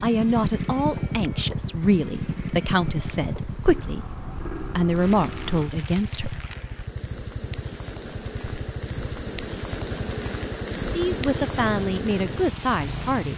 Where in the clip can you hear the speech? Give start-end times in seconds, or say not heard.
0.0-6.5, 10.8-13.3.